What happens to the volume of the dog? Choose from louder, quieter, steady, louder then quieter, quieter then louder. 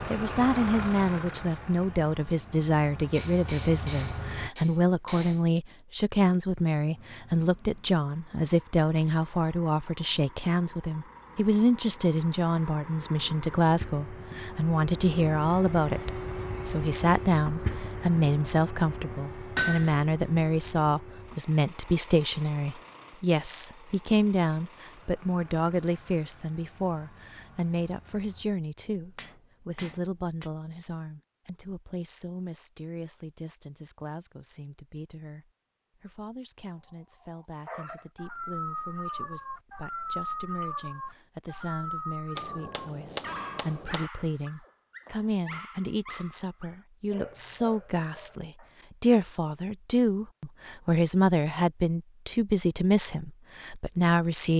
quieter.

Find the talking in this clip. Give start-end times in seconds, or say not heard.
0.1-54.5.